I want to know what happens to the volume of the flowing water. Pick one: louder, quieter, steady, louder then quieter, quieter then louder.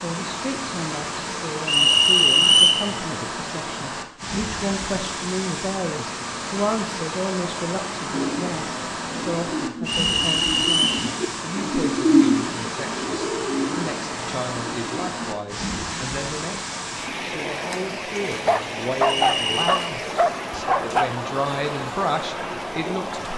steady.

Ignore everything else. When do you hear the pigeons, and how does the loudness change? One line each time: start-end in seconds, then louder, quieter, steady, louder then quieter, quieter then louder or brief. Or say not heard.
8.1-15.9 louder then quieter.